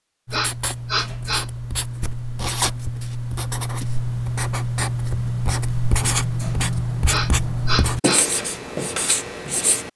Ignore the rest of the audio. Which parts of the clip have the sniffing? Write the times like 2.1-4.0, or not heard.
0.3-1.4, 7.0-8.2.